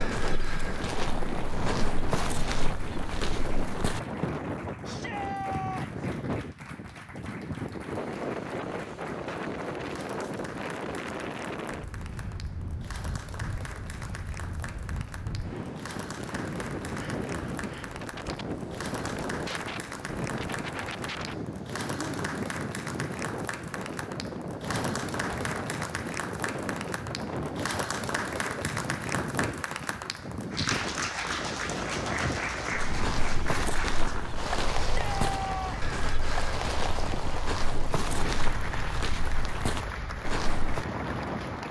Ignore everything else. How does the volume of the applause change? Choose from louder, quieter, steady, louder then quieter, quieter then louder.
louder.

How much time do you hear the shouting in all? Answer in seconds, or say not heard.
2 s.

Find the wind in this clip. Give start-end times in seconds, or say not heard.
0.0-41.6.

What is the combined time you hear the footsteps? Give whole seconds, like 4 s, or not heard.
12 s.